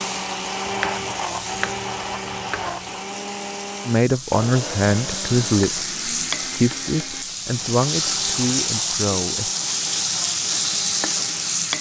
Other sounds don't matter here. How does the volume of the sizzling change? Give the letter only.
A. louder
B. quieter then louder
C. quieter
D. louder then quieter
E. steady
A.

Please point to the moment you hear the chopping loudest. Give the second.
1 s.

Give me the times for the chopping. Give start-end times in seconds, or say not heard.
0.7-3.0.